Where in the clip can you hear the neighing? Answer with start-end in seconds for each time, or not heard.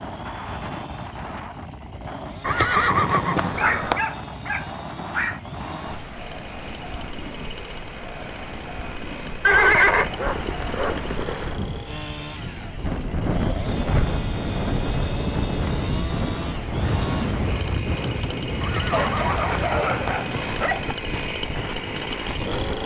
2.5-4.0, 9.4-11.6, 18.6-20.3.